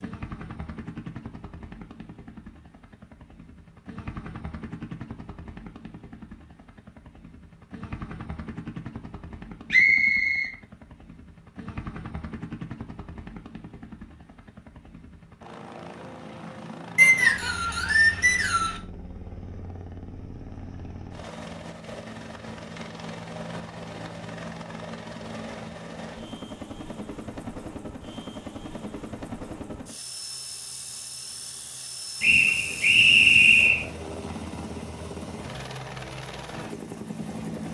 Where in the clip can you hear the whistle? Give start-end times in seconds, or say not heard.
9.7-10.5, 16.9-18.8, 32.2-33.9.